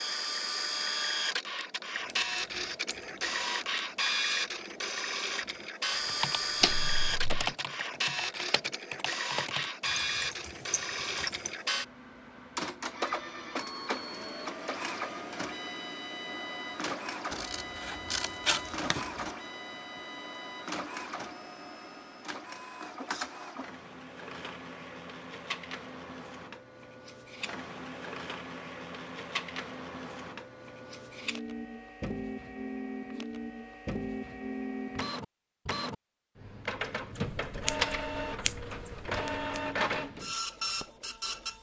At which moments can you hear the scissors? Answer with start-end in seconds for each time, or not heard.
6.6-7.5, 17.3-19.3, 37.1-39.6.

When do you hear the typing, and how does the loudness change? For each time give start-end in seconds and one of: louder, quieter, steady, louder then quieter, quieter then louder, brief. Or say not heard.
2.0-11.6 louder then quieter.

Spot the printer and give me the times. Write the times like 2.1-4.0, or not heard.
0.0-41.5.